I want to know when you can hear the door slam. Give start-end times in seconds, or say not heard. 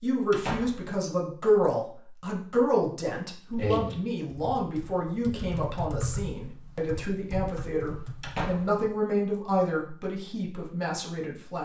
0.3-0.8, 8.2-8.8.